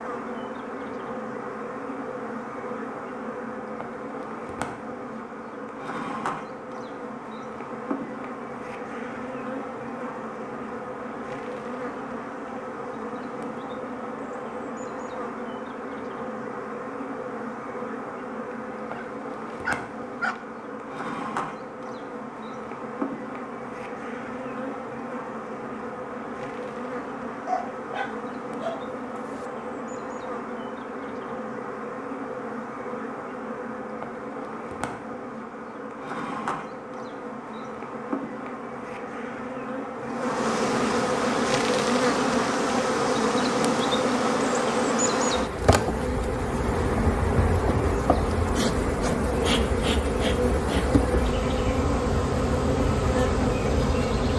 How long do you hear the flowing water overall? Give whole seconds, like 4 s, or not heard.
not heard.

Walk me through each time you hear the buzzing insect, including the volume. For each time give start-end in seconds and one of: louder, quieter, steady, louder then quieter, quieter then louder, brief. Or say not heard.
0.0-54.3 louder.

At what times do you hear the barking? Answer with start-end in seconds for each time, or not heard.
18.8-20.4, 27.4-29.4.